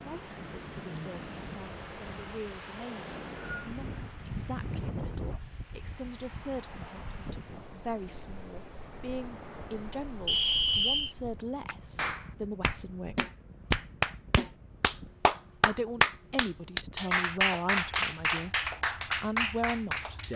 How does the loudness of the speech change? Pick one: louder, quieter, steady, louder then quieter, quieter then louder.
louder.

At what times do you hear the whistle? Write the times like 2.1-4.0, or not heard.
3.0-3.7, 10.2-11.2.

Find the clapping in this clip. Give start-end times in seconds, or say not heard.
11.7-20.3.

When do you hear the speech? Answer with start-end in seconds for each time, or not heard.
0.0-13.2, 15.7-20.3.